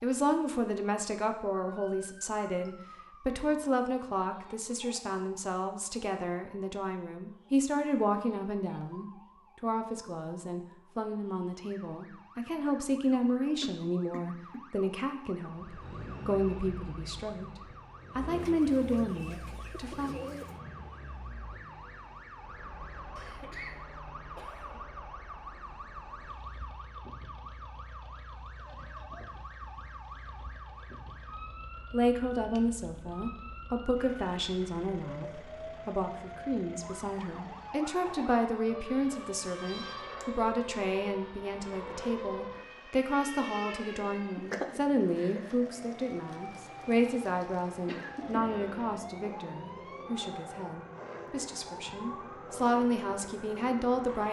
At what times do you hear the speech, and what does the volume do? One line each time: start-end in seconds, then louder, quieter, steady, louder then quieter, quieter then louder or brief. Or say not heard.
0.0-17.5 steady
18.1-20.1 brief
31.9-54.2 steady.